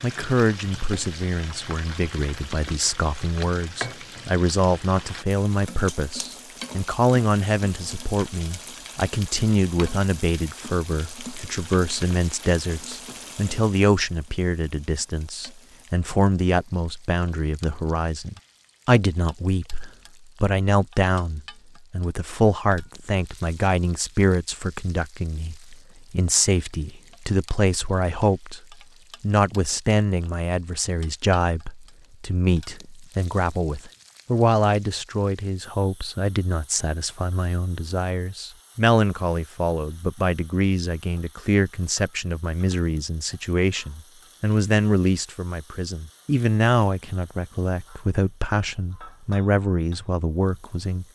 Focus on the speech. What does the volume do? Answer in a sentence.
The loudness of the speech stays about the same.